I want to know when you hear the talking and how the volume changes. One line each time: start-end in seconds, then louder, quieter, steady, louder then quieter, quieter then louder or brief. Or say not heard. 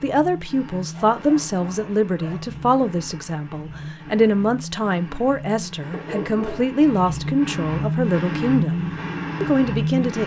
0.0-10.2 steady.